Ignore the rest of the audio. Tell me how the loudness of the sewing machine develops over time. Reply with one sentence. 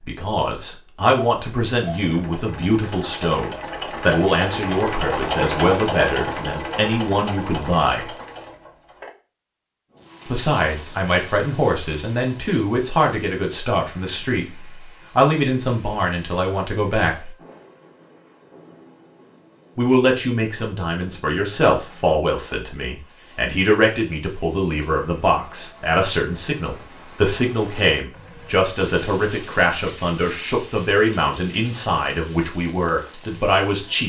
The volume of the sewing machine goes up, then down.